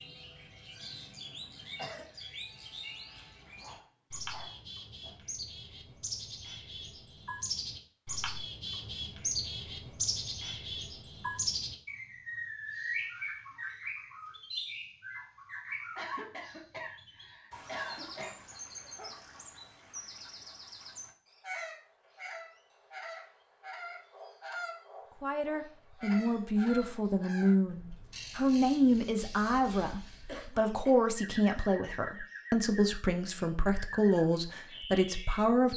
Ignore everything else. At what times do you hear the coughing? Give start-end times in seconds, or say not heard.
0.8-2.0, 15.9-18.4, 30.2-31.1.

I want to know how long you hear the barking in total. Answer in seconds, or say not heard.
3 s.